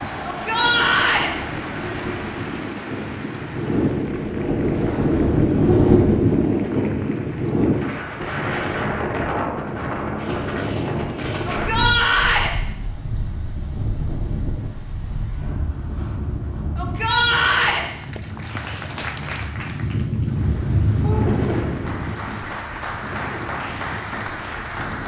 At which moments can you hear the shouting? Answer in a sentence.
The shouting can be heard from 0.2 to 1.3 s, from 11.4 to 12.5 s and from 16.8 to 17.9 s.